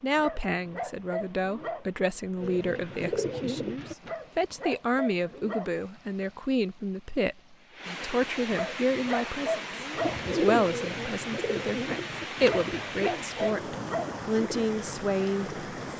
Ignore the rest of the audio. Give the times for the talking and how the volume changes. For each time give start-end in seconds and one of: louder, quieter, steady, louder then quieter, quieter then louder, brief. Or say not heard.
0.0-15.9 steady.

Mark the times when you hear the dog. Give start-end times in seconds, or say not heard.
0.1-1.9, 4.0-5.8, 8.5-10.2, 12.4-14.2.